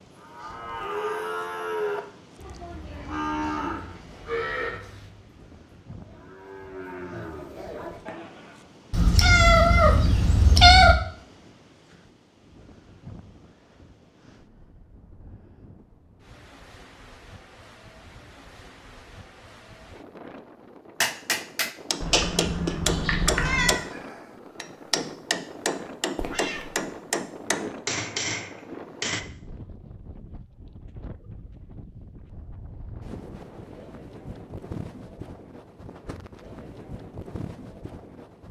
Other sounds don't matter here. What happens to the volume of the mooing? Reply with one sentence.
The volume of the mooing goes down, then up.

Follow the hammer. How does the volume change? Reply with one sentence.
The loudness of the hammer stays about the same.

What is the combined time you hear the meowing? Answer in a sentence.
You can hear the meowing for 5 seconds altogether.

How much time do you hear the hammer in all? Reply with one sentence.
You can hear the hammer for 8 seconds altogether.